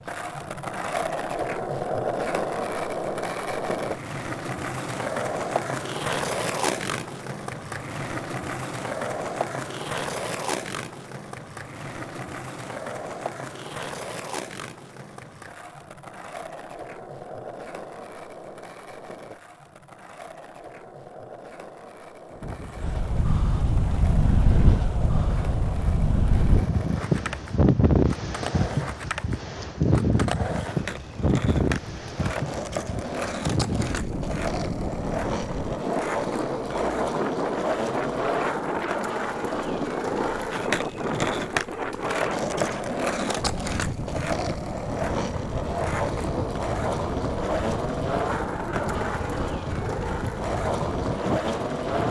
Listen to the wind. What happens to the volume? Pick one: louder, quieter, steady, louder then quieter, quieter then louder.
quieter.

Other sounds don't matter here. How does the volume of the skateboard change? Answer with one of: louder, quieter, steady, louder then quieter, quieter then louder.
quieter then louder.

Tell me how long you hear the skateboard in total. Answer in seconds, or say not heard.
52 s.